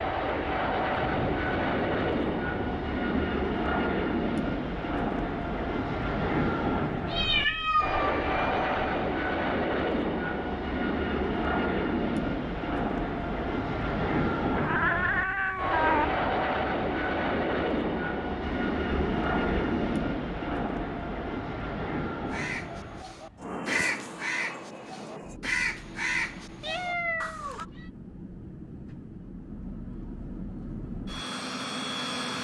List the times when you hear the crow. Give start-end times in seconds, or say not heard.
22.2-27.6.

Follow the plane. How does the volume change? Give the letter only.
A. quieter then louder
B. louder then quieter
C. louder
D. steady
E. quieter
E.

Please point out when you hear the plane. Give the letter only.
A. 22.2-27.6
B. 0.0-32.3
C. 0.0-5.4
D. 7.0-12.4
B.